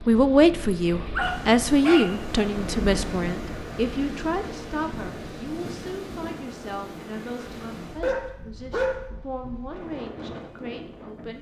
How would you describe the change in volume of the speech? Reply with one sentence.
The loudness of the speech goes down.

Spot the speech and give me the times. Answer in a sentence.
You can hear the speech from 0.1 to 11.3 s.